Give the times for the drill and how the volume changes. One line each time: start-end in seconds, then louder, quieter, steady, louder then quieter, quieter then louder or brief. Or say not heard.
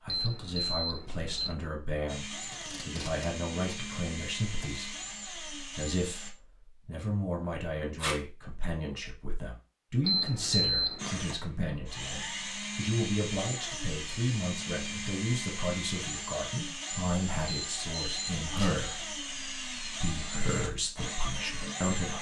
2.0-6.3 steady
10.9-22.1 steady.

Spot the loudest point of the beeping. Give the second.
11 s.